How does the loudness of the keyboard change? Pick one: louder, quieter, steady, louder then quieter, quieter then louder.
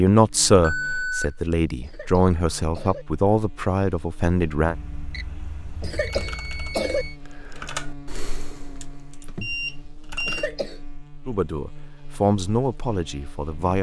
louder then quieter.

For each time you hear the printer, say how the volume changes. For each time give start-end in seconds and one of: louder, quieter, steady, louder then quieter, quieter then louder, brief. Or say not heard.
not heard.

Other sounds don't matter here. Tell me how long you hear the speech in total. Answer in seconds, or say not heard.
7 s.